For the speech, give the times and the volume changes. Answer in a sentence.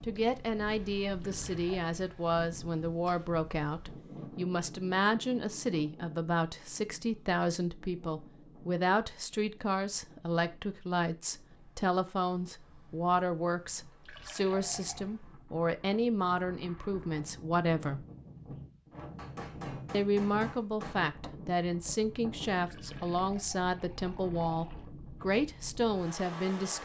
You can hear the speech from 0.0 to 18.1 s, at a steady volume; and from 19.9 to 26.8 s, at a steady volume.